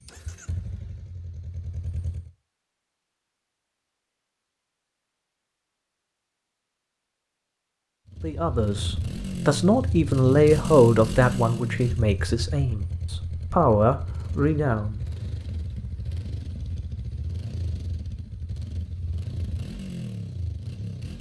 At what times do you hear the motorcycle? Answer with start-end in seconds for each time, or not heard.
0.0-2.3, 8.1-21.1.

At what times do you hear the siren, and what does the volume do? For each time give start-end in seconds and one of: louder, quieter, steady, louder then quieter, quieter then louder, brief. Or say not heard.
not heard.